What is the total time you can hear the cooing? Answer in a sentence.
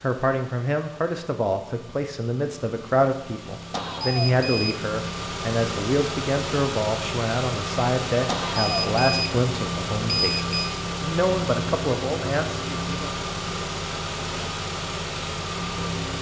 The cooing can't be heard in this clip.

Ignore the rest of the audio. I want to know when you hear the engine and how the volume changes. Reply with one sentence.
You can hear the engine from 0.0 to 16.1 s, getting louder.